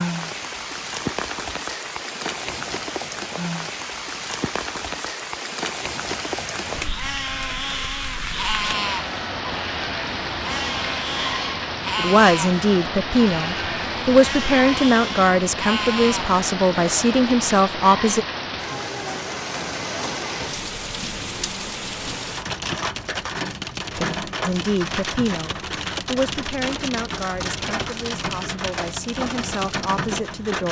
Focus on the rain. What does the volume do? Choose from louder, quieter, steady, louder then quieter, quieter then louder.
steady.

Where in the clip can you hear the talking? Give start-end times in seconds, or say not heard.
11.9-18.2, 23.9-30.6.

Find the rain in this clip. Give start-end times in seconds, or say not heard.
0.0-30.6.